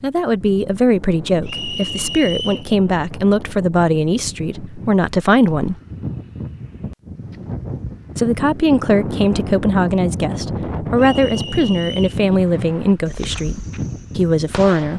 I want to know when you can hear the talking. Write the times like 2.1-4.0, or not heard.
0.0-5.8, 8.2-14.9.